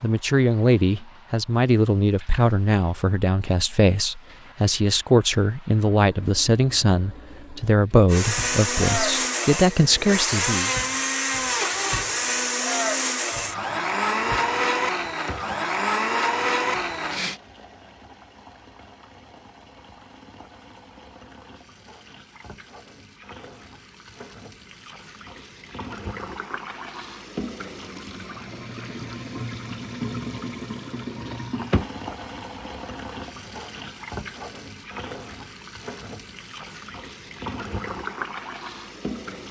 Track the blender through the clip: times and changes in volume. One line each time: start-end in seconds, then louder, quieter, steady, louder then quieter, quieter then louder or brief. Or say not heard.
8.1-17.4 steady.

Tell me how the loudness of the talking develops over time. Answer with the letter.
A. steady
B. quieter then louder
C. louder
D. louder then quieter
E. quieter
A.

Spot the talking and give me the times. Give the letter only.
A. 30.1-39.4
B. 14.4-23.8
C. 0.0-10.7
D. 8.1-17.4
C.